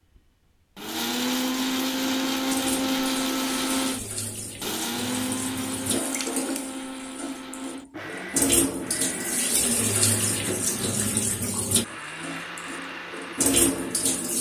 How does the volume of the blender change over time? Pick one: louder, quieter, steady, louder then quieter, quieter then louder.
quieter.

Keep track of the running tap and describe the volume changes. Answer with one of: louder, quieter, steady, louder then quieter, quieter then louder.
louder.